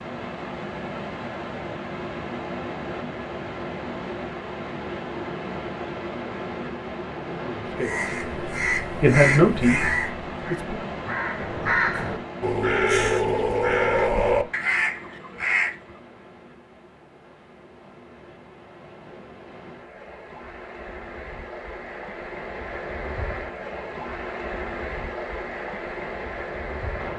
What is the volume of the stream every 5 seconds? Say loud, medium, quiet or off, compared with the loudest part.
loud, loud, loud, quiet, loud, loud.